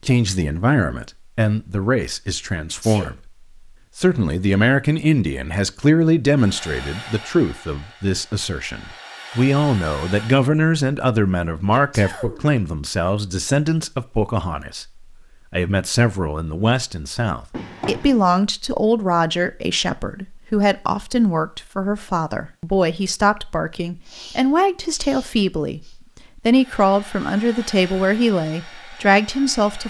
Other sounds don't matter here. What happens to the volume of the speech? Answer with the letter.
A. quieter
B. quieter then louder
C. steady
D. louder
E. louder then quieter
C.